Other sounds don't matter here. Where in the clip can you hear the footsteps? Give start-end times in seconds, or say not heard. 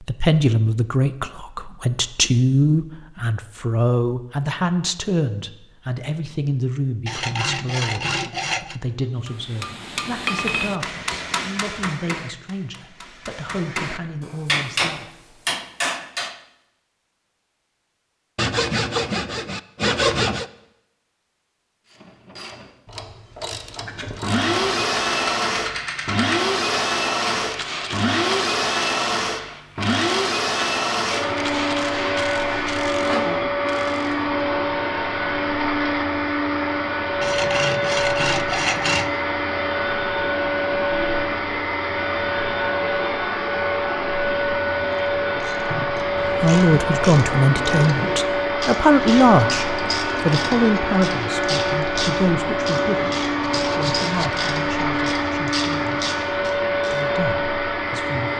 not heard.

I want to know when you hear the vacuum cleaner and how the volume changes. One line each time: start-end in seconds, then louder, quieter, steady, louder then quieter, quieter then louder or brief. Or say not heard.
24.2-58.3 steady.